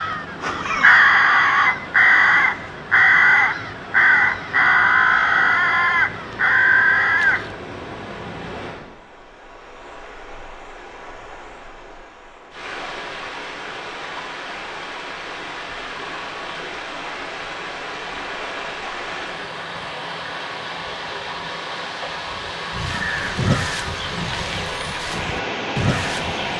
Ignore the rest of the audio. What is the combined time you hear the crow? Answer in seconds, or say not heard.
11 s.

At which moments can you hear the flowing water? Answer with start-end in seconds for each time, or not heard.
0.0-26.5.